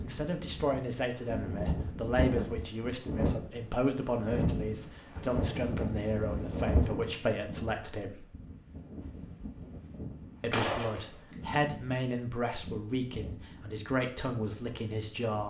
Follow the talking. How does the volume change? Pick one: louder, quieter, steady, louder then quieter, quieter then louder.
steady.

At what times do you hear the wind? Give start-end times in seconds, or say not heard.
0.0-15.4.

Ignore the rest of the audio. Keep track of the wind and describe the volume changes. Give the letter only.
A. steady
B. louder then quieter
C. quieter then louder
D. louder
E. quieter
E.